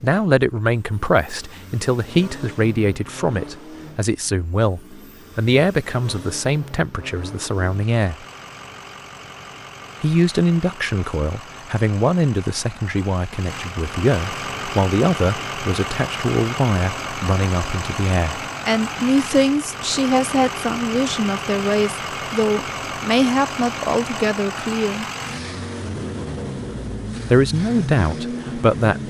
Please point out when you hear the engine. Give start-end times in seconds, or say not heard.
0.0-29.0.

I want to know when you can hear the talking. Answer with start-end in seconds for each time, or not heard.
0.0-8.2, 10.0-25.1, 27.3-29.0.